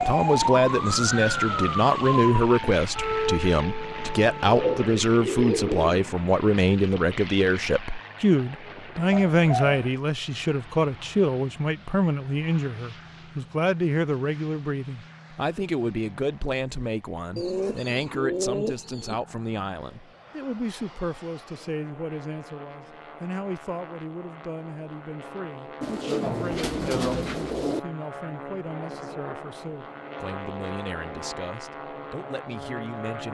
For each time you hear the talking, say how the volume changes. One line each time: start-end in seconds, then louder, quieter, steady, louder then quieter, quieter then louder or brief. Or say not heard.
0.1-33.2 quieter.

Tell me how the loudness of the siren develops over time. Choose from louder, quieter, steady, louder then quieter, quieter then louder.
quieter.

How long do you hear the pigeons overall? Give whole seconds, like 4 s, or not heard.
6 s.